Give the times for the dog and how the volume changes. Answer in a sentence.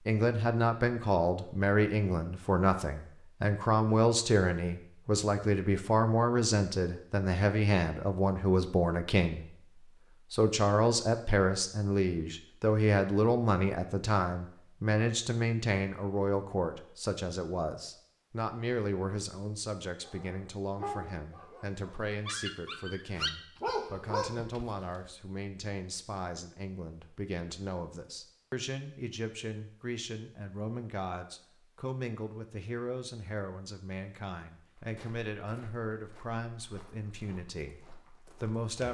You can hear the dog from 20.1 to 24.9 s, getting quieter then louder.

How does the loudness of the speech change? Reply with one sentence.
The volume of the speech goes down.